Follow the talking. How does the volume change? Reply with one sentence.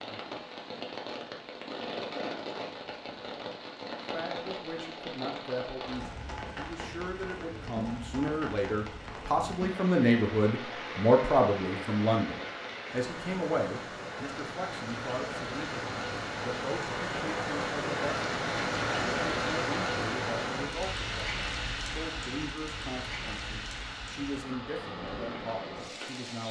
The loudness of the talking goes up, then down.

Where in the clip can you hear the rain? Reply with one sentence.
You can hear the rain from 0.0 to 26.4 s.